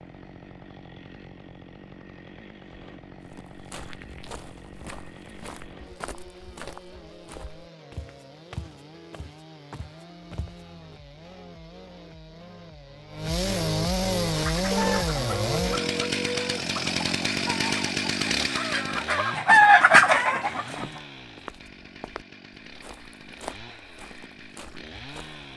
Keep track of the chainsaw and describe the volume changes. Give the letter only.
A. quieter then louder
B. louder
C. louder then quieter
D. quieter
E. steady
C.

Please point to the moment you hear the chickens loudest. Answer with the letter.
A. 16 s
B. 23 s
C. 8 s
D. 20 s
D.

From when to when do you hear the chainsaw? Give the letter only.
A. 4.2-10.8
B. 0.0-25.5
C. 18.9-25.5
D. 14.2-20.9
B.